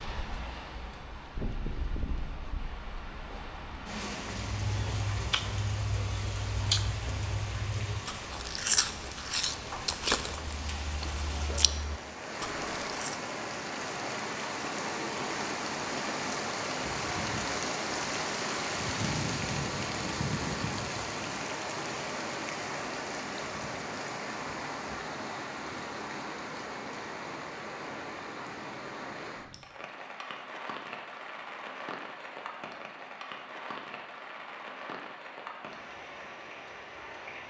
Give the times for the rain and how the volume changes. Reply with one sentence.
You can hear the rain from 0.0 to 37.4 s, getting louder then quieter.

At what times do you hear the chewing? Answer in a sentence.
The chewing can be heard from 4.5 to 13.2 s.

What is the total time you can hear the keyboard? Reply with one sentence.
You can't hear the keyboard here.